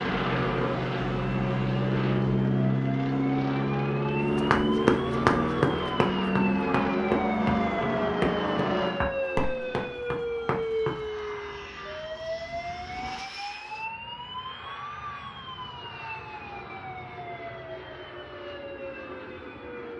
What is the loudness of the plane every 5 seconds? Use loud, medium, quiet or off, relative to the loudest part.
loud, loud, quiet, quiet.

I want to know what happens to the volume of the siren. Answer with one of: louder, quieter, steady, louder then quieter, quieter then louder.
louder then quieter.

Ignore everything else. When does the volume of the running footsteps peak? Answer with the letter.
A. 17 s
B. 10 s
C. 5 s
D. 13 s
C.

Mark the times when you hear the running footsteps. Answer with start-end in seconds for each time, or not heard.
4.2-11.0.